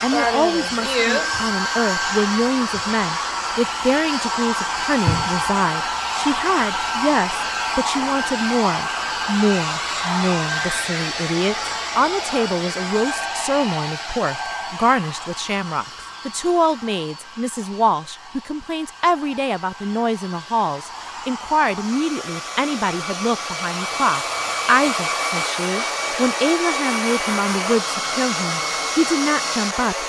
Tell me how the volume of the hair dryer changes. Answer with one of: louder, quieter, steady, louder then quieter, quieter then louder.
quieter then louder.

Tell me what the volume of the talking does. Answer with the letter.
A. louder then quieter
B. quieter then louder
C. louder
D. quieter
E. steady
E.